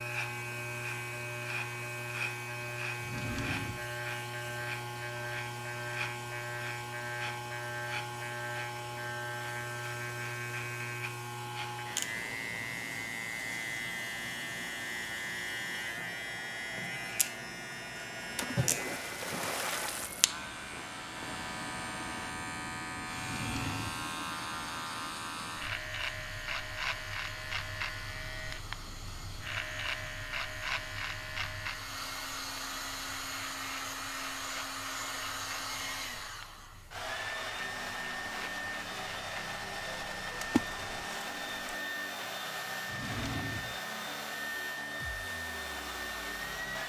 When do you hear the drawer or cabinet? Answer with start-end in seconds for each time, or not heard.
3.0-4.0, 23.1-24.1, 42.9-43.8.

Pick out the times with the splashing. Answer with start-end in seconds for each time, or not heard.
18.4-20.3, 40.4-41.8.